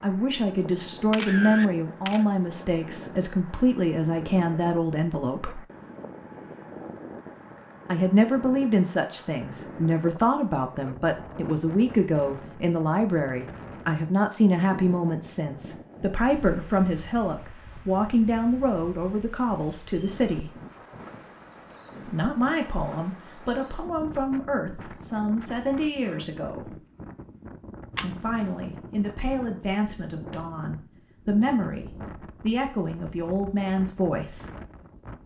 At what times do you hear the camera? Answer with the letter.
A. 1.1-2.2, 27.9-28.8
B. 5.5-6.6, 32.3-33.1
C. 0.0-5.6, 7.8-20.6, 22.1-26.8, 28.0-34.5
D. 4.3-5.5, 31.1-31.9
A.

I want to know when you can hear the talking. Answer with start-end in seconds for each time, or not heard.
0.0-5.6, 7.8-20.6, 22.1-26.8, 28.0-34.5.